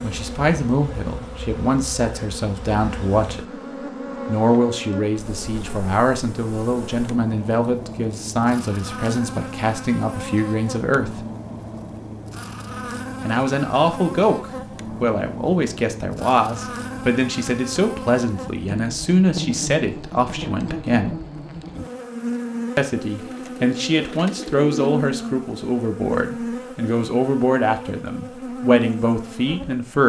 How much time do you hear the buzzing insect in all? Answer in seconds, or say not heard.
30 s.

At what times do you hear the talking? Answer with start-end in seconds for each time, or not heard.
0.0-3.6, 4.2-11.2, 13.2-21.1, 22.8-30.0.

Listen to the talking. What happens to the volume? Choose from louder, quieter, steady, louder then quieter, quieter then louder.
steady.